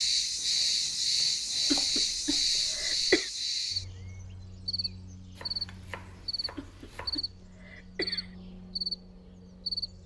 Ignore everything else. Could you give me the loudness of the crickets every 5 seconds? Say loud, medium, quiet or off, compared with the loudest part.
loud, medium.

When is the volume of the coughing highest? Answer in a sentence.
The volume of the coughing peaks at 3 seconds.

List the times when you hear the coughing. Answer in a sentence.
You can hear the coughing from 1.7 to 3.3 s and from 6.5 to 8.3 s.